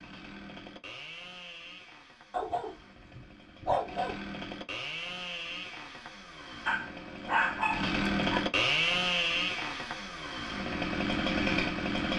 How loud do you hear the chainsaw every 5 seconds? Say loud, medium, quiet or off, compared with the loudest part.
quiet, loud, loud.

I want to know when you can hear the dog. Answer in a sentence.
You can hear the dog from 2.3 to 4.2 s and from 6.7 to 8.4 s.